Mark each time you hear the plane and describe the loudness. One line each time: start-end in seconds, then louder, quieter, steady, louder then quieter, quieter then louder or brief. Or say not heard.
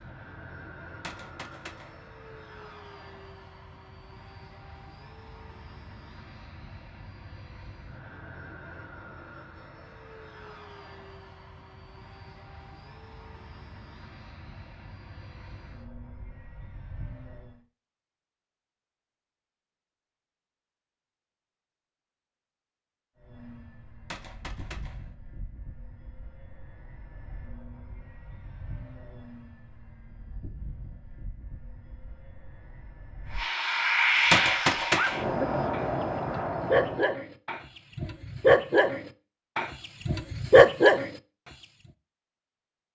0.0-17.6 steady
23.1-37.1 louder.